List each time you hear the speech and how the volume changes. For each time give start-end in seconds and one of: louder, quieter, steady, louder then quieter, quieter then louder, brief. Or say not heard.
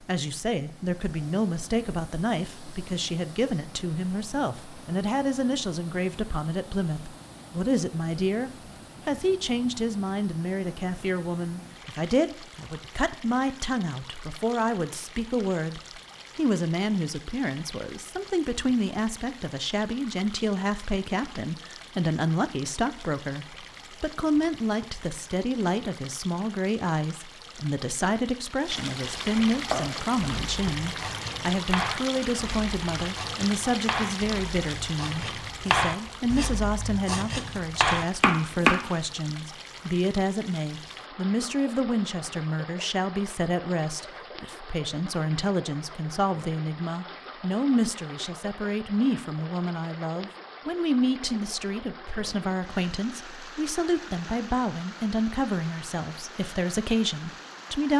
0.0-57.9 steady.